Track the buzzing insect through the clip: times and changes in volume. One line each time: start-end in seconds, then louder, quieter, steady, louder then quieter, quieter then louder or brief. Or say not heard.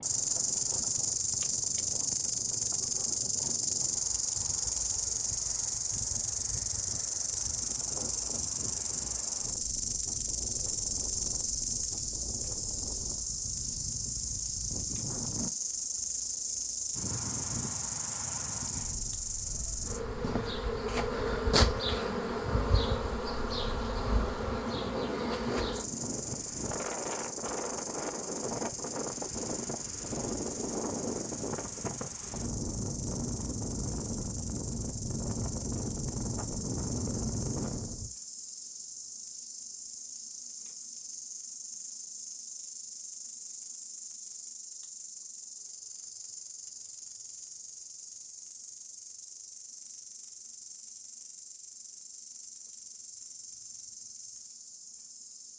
0.0-55.5 quieter.